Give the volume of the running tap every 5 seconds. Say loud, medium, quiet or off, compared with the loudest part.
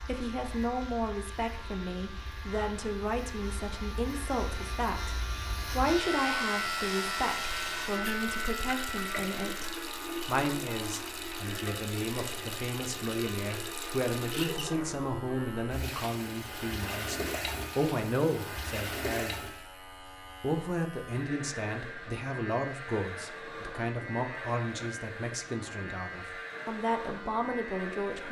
quiet, loud, loud, loud, off, off.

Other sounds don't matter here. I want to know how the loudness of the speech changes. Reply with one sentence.
The loudness of the speech stays about the same.